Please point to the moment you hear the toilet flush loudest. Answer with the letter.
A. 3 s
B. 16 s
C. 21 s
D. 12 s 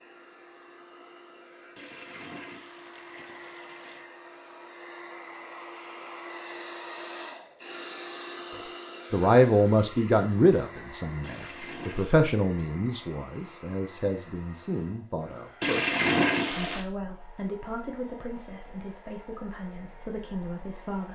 B.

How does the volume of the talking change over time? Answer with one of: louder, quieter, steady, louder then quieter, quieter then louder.
quieter.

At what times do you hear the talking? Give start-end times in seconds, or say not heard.
9.1-21.1.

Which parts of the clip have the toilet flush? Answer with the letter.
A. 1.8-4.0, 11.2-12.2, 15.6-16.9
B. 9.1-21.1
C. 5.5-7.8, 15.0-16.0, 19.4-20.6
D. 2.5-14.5
A.